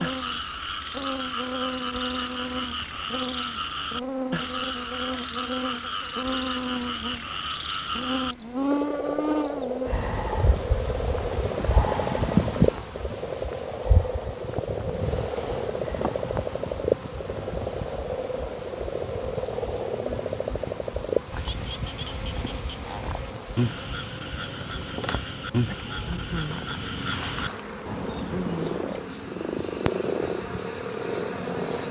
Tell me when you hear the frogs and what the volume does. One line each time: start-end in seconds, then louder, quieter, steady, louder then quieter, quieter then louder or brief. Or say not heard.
0.0-31.8 steady.